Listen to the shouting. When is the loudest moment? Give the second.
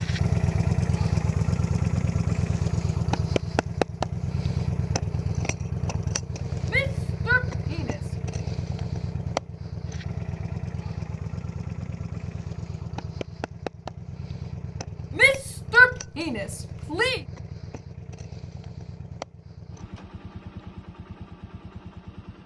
16 s.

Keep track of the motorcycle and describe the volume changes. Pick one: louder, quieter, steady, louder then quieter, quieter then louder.
quieter.